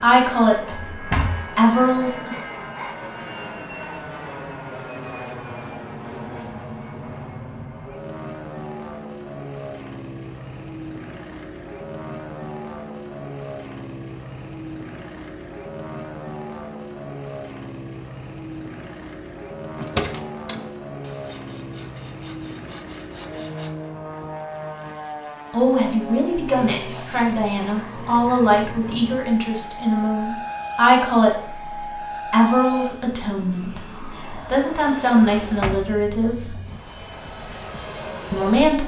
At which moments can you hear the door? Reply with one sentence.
The door can be heard from 0.7 to 1.4 s, from 19.8 to 20.7 s and from 35.5 to 35.9 s.